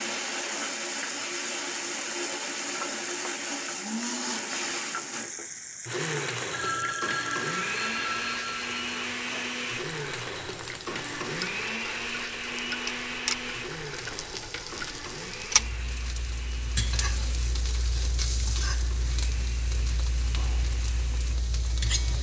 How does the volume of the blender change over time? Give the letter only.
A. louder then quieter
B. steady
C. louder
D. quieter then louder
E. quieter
E.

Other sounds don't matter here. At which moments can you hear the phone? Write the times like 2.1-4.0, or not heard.
6.5-8.9.